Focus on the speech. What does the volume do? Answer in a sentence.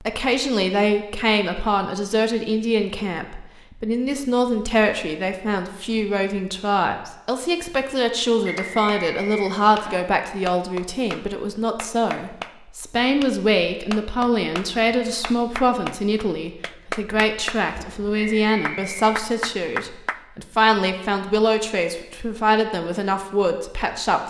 The loudness of the speech stays about the same.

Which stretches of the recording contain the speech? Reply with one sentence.
You can hear the speech from 0.0 to 24.2 s.